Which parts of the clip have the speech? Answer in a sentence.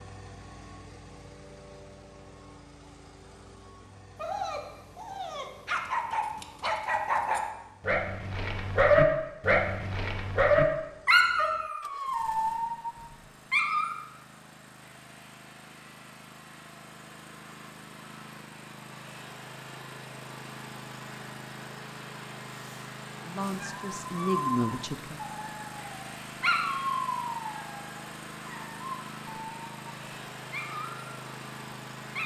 You can hear the speech from 23.2 to 25.2 s.